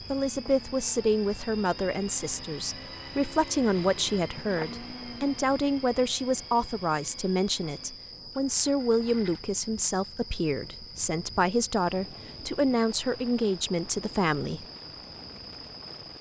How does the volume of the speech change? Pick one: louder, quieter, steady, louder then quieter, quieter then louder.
steady.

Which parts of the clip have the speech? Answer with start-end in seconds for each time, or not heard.
0.1-14.7.